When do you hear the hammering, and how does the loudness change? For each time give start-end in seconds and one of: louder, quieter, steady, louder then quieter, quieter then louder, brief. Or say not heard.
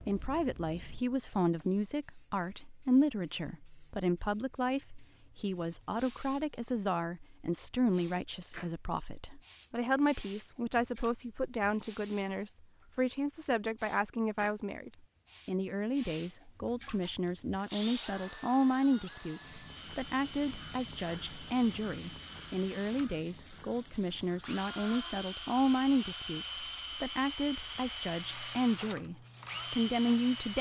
not heard.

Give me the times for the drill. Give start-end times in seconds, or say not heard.
17.0-30.5.